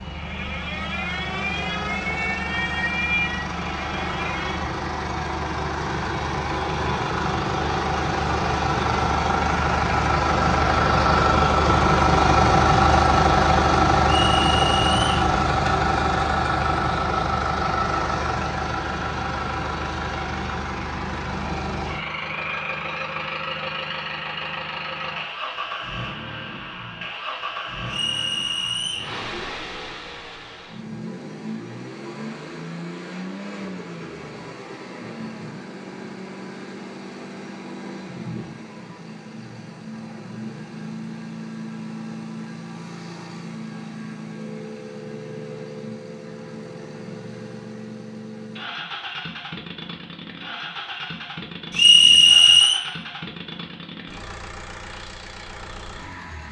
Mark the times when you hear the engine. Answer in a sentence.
The engine can be heard from 0.0 to 56.4 s.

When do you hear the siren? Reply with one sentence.
You can hear the siren from 0.0 to 4.6 s.